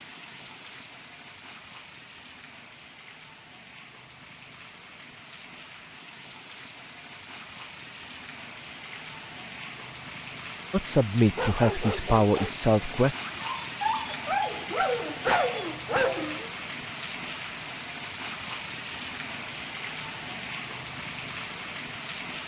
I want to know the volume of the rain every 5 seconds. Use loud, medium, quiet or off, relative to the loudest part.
medium, medium, loud, loud, loud.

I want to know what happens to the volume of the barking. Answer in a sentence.
The loudness of the barking goes down, then up.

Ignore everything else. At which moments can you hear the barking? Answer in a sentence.
You can hear the barking from 11.3 to 16.5 s.